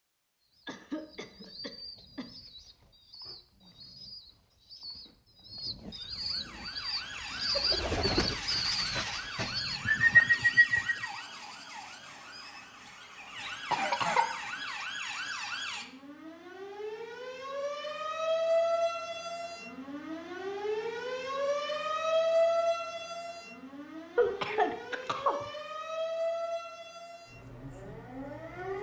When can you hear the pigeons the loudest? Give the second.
10 s.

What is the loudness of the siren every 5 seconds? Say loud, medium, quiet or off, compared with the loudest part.
off, medium, medium, loud, loud, medium.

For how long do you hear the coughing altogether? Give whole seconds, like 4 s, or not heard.
4 s.